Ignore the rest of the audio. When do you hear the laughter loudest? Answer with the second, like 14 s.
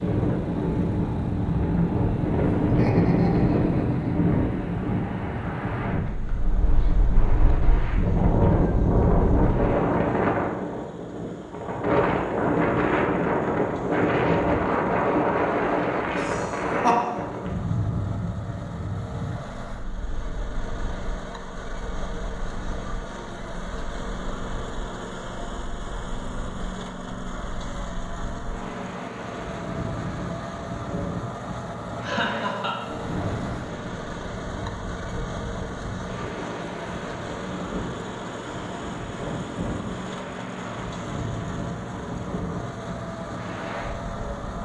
17 s.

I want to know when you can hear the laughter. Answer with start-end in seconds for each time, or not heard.
2.5-4.2, 16.1-17.0, 32.0-32.8.